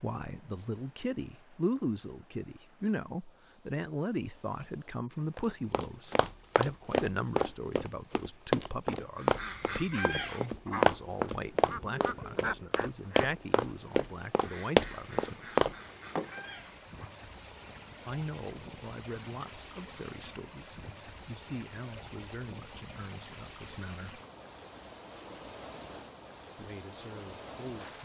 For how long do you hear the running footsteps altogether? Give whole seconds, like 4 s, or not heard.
11 s.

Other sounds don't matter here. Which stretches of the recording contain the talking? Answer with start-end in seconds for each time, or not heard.
0.0-15.6, 18.1-24.2, 26.6-28.0.